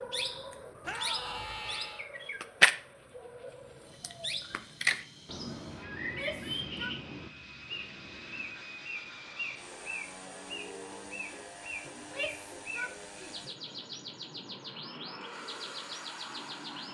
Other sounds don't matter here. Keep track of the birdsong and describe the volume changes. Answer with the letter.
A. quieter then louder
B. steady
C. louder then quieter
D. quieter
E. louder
D.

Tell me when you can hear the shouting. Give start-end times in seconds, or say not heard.
0.8-2.0, 6.0-7.0, 11.9-13.3.